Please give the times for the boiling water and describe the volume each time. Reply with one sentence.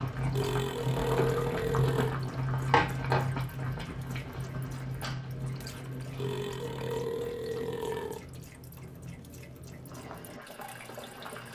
The boiling water can be heard from 0.0 to 11.5 s, getting quieter.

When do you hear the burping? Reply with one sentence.
The burping can be heard from 0.3 to 2.1 s and from 6.2 to 8.2 s.